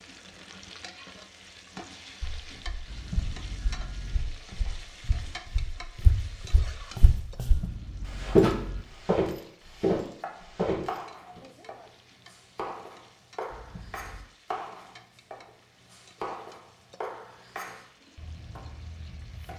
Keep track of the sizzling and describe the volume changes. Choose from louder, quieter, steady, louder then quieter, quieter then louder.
quieter.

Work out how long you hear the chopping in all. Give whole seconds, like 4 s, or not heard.
9 s.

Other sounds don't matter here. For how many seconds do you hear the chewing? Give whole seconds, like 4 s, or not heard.
not heard.